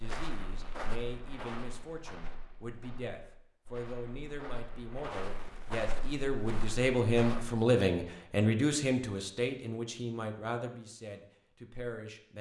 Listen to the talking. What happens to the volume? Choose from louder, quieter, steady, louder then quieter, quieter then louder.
louder then quieter.